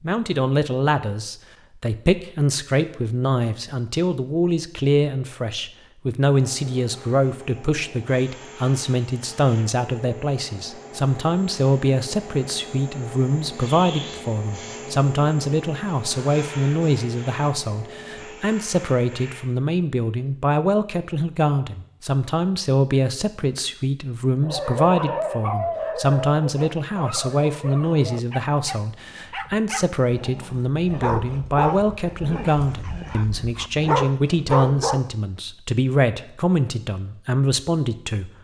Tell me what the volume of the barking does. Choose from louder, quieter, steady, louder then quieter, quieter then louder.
quieter then louder.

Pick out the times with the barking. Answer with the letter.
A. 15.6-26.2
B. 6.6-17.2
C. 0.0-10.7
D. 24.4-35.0
D.